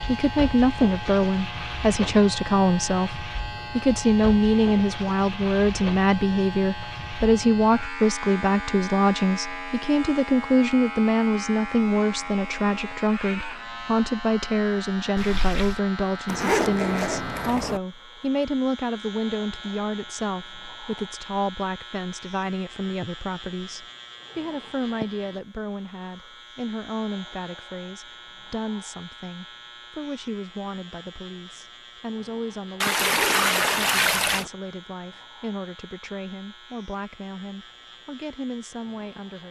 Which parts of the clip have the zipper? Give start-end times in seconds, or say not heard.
16.2-17.8, 33.0-34.5.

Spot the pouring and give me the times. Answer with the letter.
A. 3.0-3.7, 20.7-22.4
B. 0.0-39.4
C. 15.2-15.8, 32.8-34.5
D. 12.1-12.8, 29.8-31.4
C.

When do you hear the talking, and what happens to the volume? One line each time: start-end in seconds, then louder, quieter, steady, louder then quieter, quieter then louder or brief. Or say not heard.
0.0-39.4 quieter.